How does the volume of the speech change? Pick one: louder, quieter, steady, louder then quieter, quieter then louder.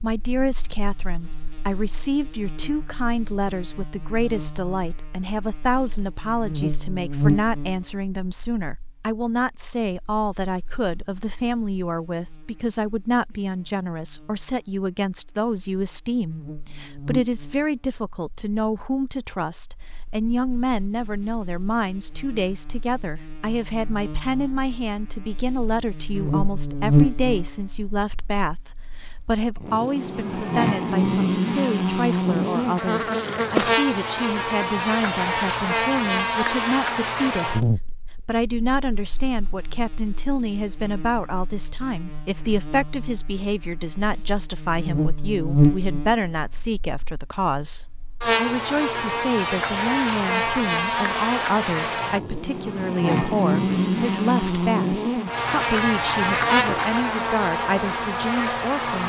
steady.